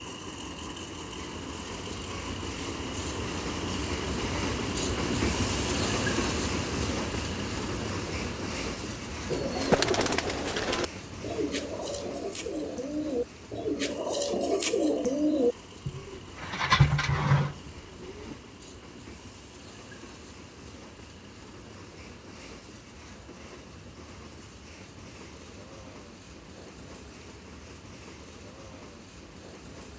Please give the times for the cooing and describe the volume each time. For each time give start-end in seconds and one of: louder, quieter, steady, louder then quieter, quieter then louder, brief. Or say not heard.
9.3-18.4 quieter then louder.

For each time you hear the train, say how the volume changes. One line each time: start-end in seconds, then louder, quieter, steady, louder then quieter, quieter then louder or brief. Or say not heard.
0.0-29.9 quieter.